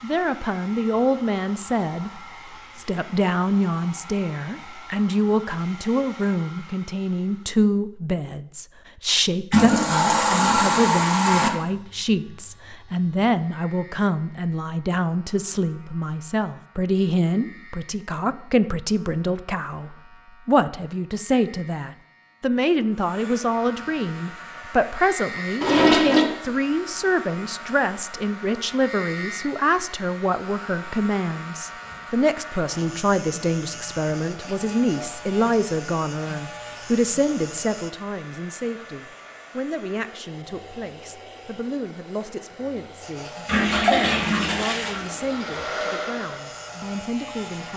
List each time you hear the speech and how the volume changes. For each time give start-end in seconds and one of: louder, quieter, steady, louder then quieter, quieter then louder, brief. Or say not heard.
0.0-47.7 quieter.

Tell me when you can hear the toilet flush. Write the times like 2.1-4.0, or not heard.
9.5-11.5, 25.6-26.2, 43.5-45.7.